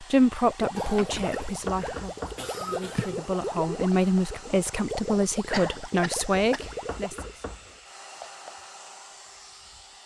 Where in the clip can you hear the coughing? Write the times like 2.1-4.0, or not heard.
0.8-3.2, 5.5-6.7.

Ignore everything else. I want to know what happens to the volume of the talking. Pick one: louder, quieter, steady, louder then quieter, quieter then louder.
quieter then louder.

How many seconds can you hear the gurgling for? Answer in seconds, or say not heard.
7 s.